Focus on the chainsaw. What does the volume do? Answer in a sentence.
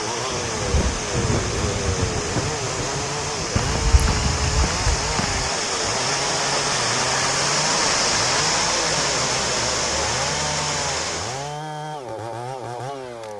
The volume of the chainsaw stays about the same.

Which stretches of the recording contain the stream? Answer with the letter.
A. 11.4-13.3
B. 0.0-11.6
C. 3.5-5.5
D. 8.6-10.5
B.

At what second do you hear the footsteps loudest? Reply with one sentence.
The volume of the footsteps peaks at 4 seconds.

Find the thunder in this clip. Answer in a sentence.
You can hear the thunder from 0.3 to 3.6 s.